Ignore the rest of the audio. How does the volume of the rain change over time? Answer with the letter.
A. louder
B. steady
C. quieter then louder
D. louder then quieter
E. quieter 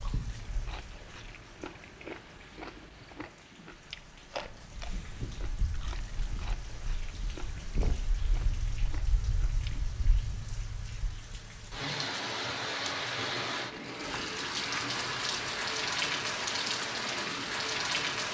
A.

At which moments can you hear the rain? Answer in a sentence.
You can hear the rain from 0.0 to 18.2 s.